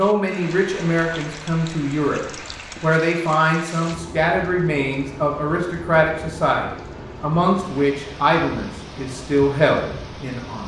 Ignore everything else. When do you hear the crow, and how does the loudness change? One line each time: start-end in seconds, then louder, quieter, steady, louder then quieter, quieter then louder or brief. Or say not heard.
not heard.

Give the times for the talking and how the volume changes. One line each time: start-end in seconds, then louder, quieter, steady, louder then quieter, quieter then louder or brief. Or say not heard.
0.0-2.2 brief
2.8-10.6 steady.